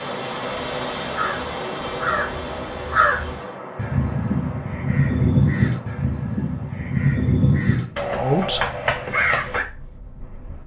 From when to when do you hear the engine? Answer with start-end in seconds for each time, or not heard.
0.0-3.6.